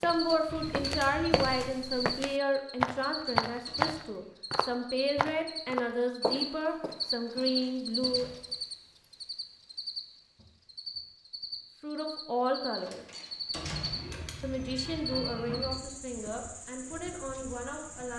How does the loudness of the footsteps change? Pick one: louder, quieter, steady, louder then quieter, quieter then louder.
louder then quieter.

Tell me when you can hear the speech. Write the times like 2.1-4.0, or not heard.
0.0-8.3, 11.8-13.1, 14.4-18.1.